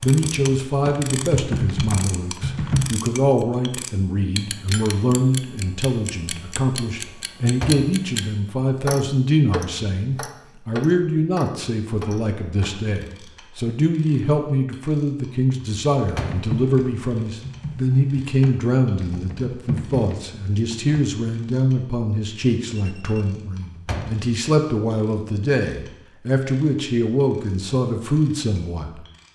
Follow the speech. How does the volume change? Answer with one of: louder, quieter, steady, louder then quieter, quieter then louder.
steady.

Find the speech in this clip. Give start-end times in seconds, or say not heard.
0.0-29.0.